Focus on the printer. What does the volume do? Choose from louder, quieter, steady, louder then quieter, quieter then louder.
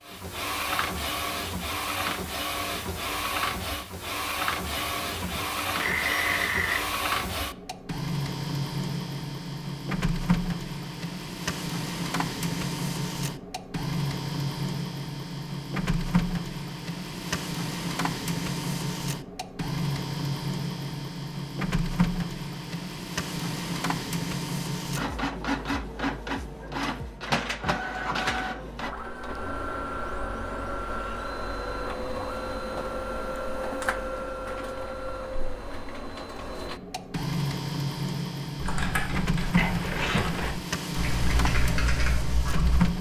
steady.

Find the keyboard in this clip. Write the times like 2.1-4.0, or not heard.
38.5-42.9.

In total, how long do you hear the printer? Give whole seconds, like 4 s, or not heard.
43 s.